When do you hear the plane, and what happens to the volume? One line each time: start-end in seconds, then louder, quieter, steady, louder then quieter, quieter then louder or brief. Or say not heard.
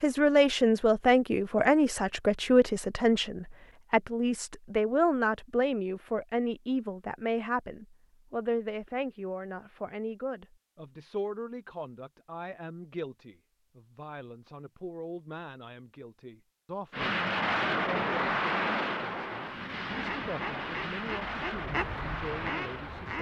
16.9-23.1 quieter.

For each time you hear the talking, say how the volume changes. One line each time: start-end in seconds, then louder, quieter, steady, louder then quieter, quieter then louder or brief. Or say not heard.
0.0-23.1 quieter.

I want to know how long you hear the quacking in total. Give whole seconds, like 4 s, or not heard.
3 s.